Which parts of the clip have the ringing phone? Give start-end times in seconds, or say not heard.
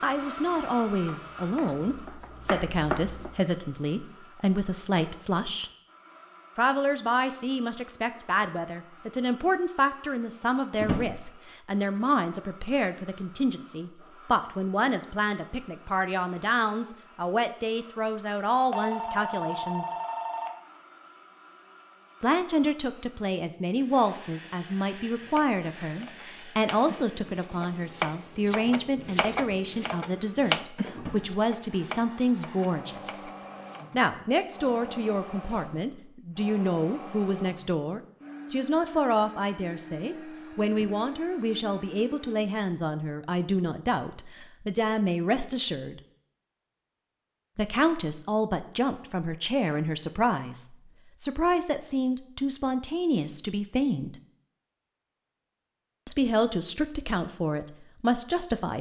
18.7-20.5.